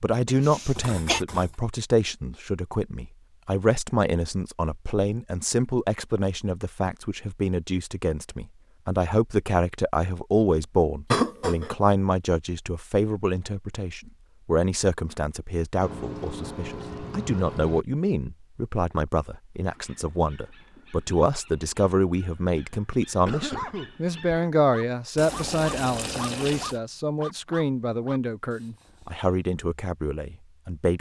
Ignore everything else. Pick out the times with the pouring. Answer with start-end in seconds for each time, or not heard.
0.7-1.6, 15.8-17.9, 25.1-26.8.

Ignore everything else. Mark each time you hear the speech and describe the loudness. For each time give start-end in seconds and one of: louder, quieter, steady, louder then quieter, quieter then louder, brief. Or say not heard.
0.0-30.9 steady.